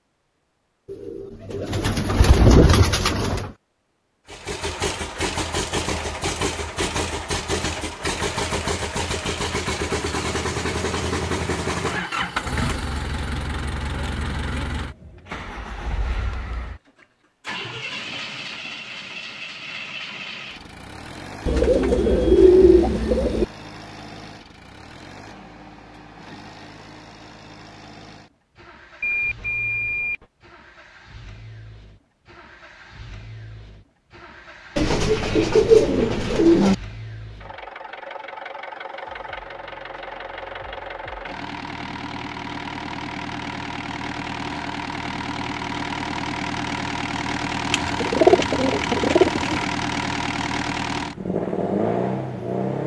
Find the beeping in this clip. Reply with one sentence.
The beeping can be heard from 29.0 to 30.2 s.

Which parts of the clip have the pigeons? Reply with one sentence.
You can hear the pigeons from 0.9 to 3.5 s, from 21.4 to 23.4 s, from 34.8 to 36.8 s and from 47.7 to 49.6 s.